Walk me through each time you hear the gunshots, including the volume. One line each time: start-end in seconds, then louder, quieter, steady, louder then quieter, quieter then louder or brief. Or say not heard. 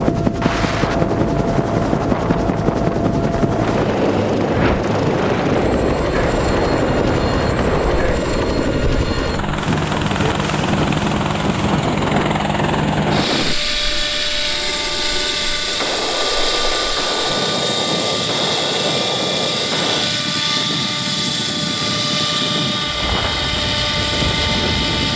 3.5-8.1 steady
15.7-20.1 steady.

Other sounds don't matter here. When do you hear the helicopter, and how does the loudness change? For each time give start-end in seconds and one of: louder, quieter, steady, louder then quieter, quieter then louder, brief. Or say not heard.
0.0-25.1 steady.